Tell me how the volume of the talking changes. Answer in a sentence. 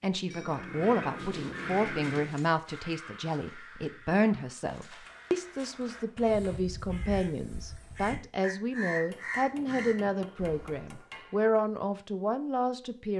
The volume of the talking stays about the same.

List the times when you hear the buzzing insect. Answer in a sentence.
The buzzing insect can't be heard in this clip.